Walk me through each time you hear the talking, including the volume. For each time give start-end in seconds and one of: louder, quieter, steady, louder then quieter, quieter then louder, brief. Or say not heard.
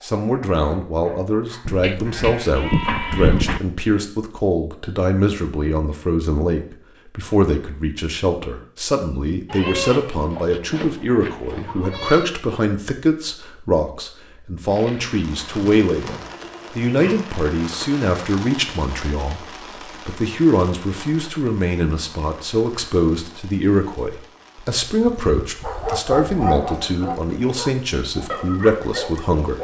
0.0-29.5 steady.